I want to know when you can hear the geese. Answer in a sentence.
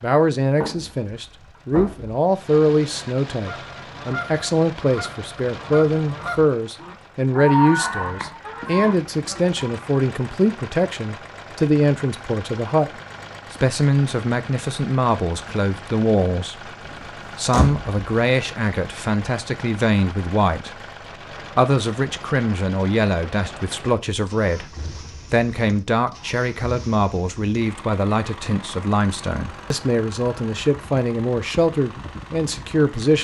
The geese can be heard from 3.3 to 9.9 s.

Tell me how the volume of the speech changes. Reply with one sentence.
The loudness of the speech stays about the same.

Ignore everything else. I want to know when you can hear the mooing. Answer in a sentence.
The mooing can't be heard in this clip.